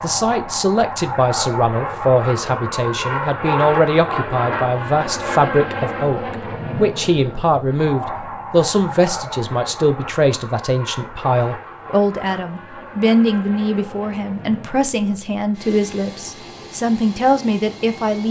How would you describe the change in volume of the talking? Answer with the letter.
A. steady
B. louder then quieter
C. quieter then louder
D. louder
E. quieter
A.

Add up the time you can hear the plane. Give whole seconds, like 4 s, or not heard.
18 s.